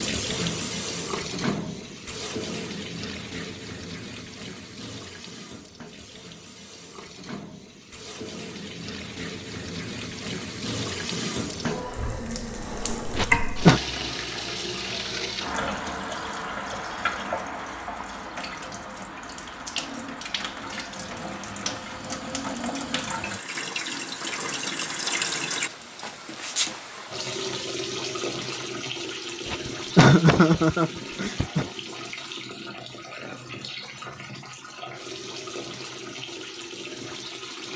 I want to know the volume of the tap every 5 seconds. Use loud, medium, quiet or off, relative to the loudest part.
loud, medium, loud, loud, loud, loud, medium, medium.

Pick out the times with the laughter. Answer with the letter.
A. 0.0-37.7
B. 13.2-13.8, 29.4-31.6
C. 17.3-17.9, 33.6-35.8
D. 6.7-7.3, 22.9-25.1
B.